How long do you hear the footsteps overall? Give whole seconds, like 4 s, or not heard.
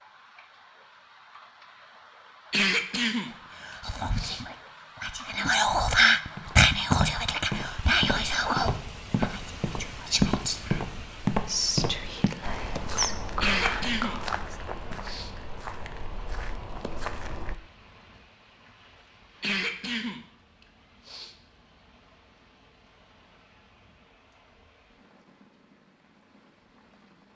11 s.